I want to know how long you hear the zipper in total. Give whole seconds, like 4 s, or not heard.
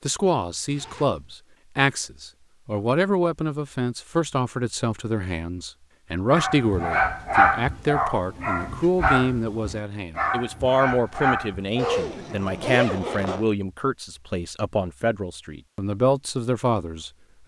2 s.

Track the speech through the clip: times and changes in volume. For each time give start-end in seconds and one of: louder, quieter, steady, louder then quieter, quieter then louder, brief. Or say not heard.
0.0-17.4 steady.